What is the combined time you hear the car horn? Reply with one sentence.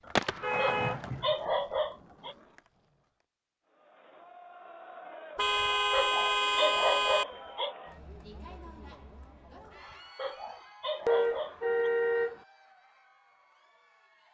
You can hear the car horn for 4 seconds altogether.